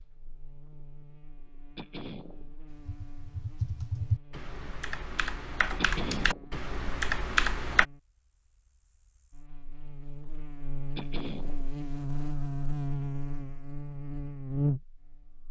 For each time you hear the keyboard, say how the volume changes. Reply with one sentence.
You can hear the keyboard from 2.9 to 7.8 s, getting louder.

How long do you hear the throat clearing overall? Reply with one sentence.
The throat clearing can be heard for 2 seconds in total.